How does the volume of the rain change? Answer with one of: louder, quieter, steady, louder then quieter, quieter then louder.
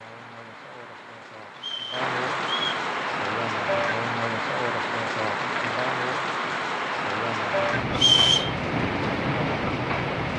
louder.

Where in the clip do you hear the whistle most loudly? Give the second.
8 s.